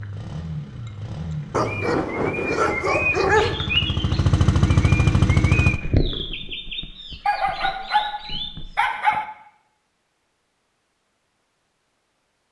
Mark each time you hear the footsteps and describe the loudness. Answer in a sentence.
The footsteps can't be heard in this clip.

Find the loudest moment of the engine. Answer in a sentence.
The volume of the engine peaks at 5 seconds.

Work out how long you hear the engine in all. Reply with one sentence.
You can hear the engine for 6 seconds altogether.